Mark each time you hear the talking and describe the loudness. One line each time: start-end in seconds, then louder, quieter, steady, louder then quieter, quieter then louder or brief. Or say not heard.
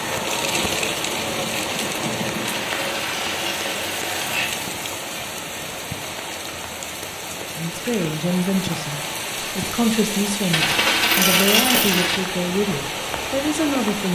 7.5-14.1 steady.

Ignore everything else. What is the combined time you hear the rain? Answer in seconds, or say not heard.
14 s.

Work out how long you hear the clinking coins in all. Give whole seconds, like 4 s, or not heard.
4 s.